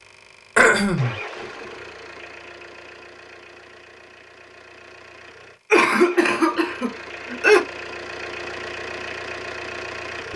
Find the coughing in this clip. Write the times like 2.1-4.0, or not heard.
0.6-1.1, 5.7-7.6.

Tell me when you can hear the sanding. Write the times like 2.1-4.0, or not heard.
not heard.